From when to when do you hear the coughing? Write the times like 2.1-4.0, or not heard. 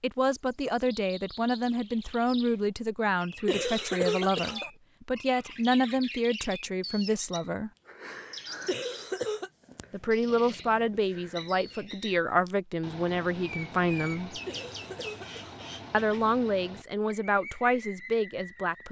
3.5-4.7, 8.7-9.5, 14.4-15.7.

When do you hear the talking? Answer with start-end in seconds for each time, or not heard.
0.0-7.7, 9.9-14.4, 15.9-18.8.